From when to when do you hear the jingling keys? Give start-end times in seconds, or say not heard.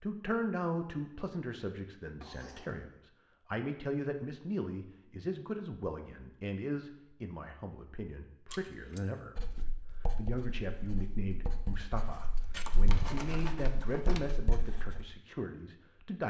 2.2-2.8, 8.5-9.0, 12.5-14.2.